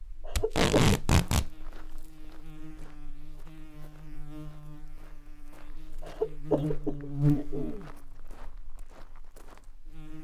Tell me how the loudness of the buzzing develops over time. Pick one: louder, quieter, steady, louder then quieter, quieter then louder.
louder then quieter.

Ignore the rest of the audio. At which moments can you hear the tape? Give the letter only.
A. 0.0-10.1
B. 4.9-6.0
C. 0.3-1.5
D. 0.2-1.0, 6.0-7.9
C.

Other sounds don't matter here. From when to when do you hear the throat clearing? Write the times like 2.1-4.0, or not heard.
0.2-1.0, 6.0-7.9.